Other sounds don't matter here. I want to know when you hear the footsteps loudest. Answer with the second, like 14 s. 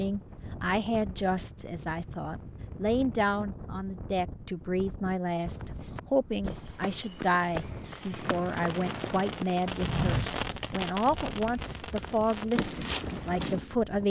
10 s.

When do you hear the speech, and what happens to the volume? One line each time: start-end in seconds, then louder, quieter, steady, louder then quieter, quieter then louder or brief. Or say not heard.
0.0-14.0 steady.